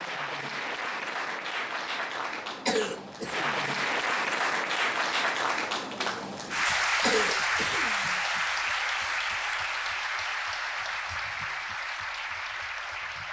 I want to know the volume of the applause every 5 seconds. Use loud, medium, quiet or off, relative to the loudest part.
loud, loud, medium.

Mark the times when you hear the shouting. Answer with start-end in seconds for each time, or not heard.
not heard.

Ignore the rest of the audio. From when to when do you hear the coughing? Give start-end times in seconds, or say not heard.
2.6-3.6, 7.0-8.2.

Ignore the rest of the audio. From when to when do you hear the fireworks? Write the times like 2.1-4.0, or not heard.
not heard.